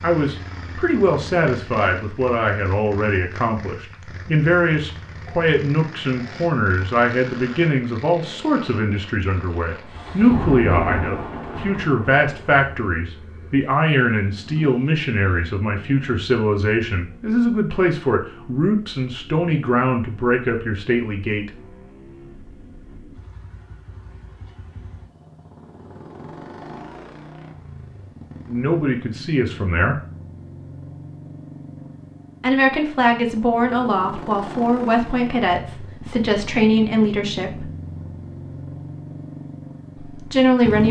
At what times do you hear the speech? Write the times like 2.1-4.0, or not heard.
0.0-21.5, 28.4-29.9, 32.4-37.7, 40.1-40.8.